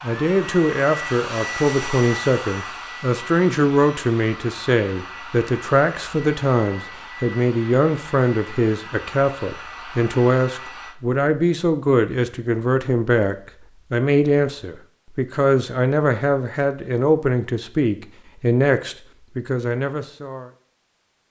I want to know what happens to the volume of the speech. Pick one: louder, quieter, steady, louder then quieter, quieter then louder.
steady.